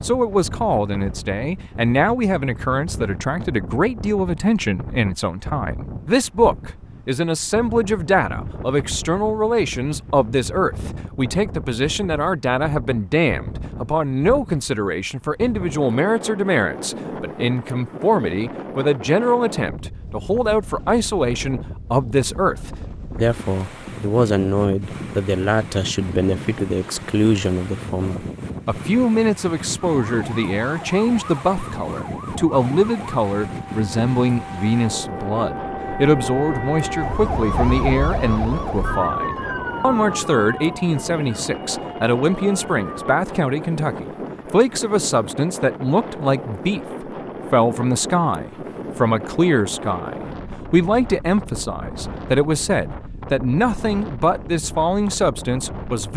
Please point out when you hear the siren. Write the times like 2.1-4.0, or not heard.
30.0-43.2.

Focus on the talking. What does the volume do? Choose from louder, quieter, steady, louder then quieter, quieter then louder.
steady.